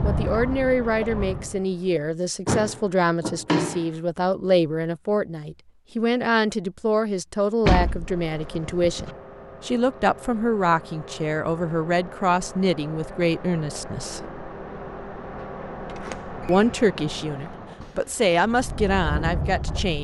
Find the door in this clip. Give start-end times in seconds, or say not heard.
2.5-3.9, 7.7-9.1, 15.8-17.8.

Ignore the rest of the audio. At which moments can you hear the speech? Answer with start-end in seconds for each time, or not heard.
0.0-14.2, 16.4-19.9.